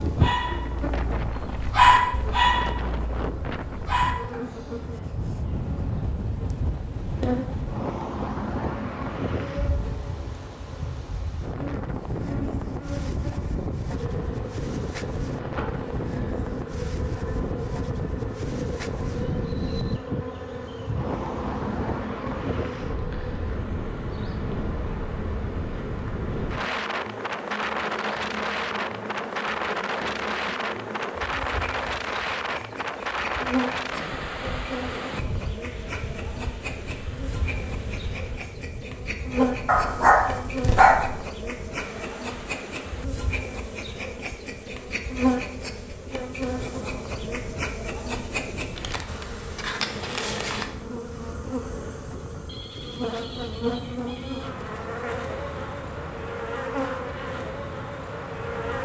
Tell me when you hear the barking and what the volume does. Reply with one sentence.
You can hear the barking from 0.0 to 4.4 s, getting louder then quieter; and briefly from 39.4 to 41.1 s.